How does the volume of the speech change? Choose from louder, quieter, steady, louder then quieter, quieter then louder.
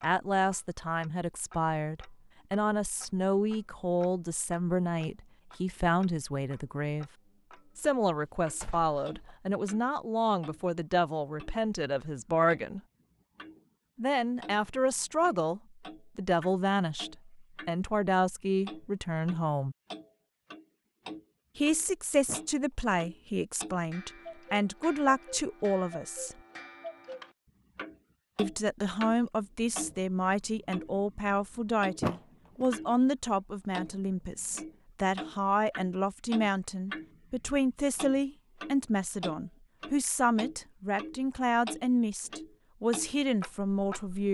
steady.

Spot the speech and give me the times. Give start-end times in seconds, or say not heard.
0.0-7.1, 7.8-12.8, 13.9-19.8, 21.6-26.4, 28.4-44.2.